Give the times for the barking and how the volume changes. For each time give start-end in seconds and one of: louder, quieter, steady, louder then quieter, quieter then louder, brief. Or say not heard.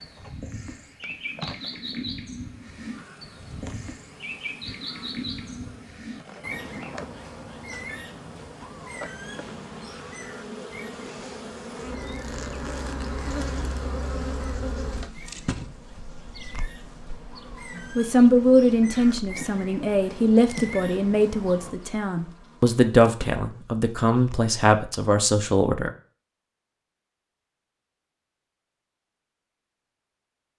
not heard.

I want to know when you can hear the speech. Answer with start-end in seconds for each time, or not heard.
17.8-25.9.